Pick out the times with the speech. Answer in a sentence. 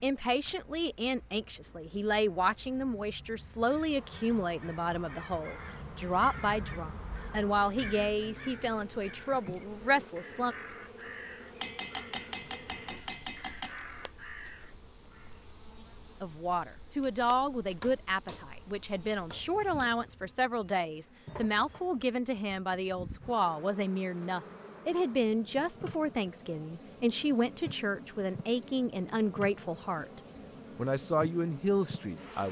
The speech can be heard from 0.0 to 10.6 s and from 16.2 to 32.4 s.